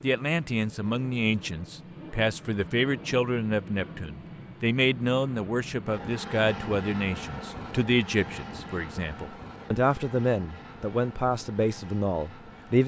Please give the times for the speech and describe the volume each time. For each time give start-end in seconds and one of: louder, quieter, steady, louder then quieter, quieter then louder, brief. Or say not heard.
0.0-12.8 steady.